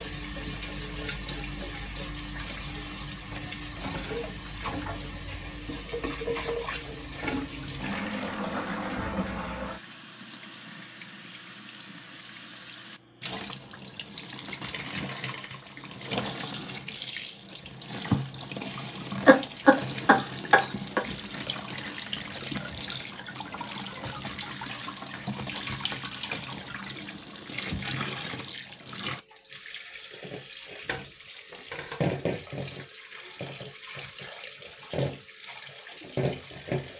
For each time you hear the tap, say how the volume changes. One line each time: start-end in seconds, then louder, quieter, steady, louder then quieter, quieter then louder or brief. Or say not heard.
0.0-36.9 steady.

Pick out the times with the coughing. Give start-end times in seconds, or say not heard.
19.2-21.1.